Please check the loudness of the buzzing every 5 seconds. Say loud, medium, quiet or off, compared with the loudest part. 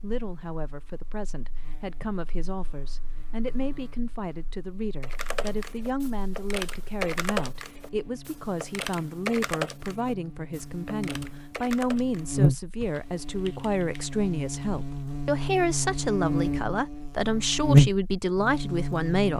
quiet, quiet, medium, loud.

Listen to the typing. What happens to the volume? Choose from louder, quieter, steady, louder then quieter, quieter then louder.
quieter.